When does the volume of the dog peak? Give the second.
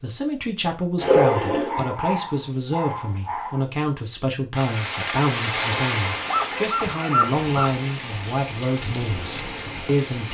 1 s.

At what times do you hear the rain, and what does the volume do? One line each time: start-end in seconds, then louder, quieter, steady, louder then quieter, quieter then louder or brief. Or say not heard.
4.5-10.3 quieter.